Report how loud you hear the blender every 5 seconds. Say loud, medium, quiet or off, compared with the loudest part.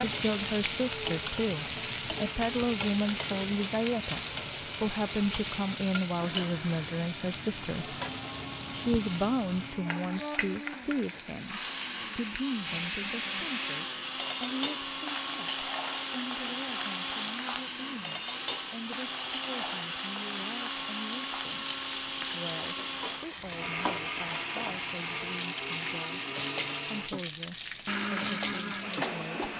medium, medium, loud, loud, loud, loud.